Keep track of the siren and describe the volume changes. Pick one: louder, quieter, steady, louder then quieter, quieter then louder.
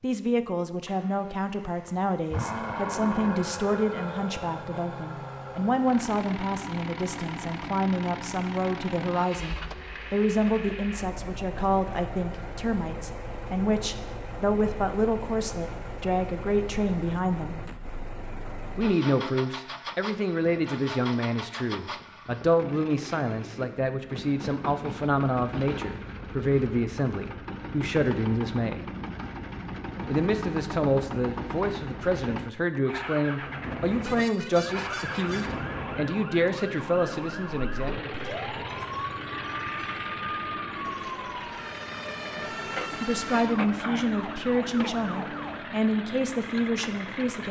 steady.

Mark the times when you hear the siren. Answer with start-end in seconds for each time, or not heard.
34.5-45.6.